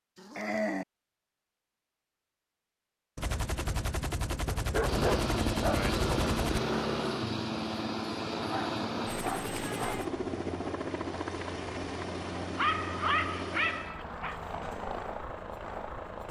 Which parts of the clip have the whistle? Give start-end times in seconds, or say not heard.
not heard.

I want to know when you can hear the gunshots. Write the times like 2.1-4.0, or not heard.
3.1-6.6.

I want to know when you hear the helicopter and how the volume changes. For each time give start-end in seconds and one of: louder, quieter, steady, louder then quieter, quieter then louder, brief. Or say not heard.
4.8-16.2 quieter.